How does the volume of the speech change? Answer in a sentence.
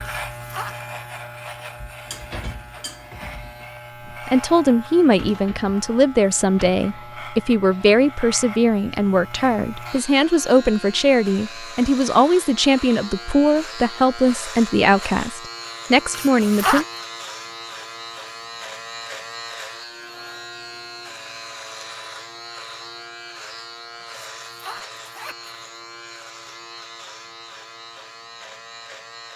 The loudness of the speech stays about the same.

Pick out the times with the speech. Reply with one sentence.
The speech can be heard from 4.2 to 16.9 s.